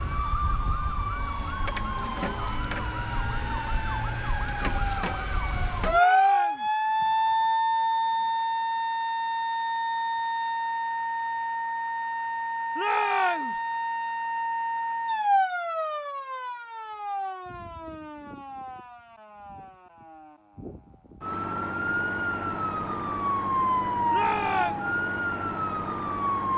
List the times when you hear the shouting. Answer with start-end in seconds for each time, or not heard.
5.8-6.8, 12.8-13.6, 24.1-24.9.